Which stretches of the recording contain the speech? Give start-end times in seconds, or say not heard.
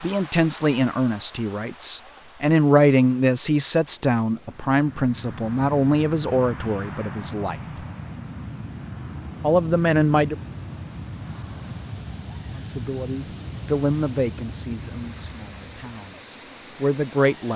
0.0-7.5, 9.4-10.3, 12.6-17.5.